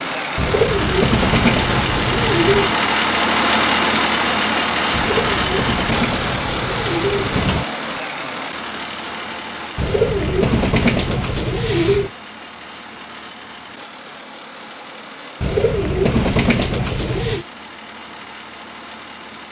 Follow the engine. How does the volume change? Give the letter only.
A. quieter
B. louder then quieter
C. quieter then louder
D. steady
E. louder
A.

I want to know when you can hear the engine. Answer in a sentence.
The engine can be heard from 0.0 to 19.4 s.